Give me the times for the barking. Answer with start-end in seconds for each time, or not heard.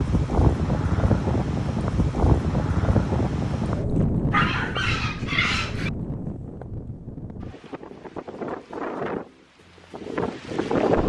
4.3-5.9.